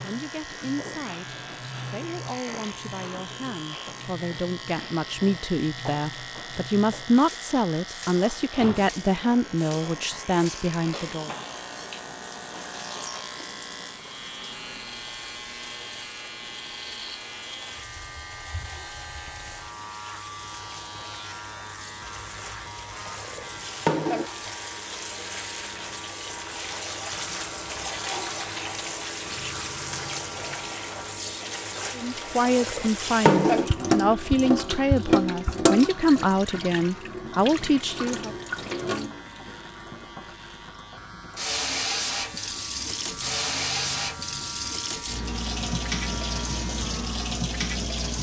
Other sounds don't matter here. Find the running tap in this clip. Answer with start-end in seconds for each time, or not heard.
0.0-48.1.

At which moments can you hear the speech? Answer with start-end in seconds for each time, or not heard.
0.0-11.3, 31.9-38.4.